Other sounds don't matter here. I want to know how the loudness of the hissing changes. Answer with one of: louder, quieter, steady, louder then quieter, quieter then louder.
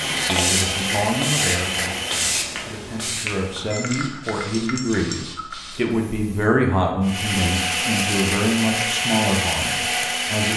quieter.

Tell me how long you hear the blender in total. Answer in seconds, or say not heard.
6 s.